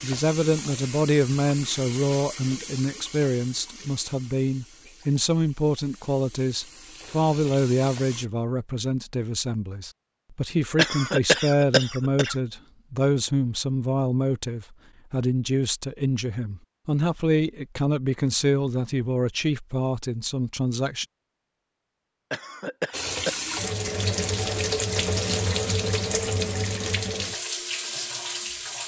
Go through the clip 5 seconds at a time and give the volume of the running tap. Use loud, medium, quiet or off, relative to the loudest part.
medium, quiet, off, off, loud, loud.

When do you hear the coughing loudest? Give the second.
11 s.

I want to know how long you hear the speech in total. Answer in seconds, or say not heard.
21 s.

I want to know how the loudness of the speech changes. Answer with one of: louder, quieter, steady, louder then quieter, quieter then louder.
steady.